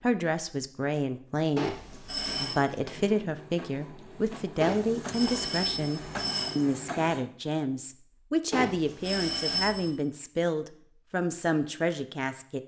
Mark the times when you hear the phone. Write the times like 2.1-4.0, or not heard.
1.6-2.6, 4.6-6.6, 8.5-9.9.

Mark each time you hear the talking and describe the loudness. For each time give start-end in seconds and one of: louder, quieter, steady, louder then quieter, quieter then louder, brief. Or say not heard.
0.0-12.6 steady.